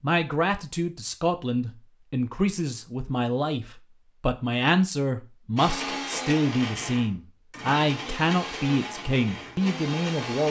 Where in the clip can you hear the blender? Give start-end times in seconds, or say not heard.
5.5-10.4.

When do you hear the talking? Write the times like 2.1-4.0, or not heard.
0.0-10.4.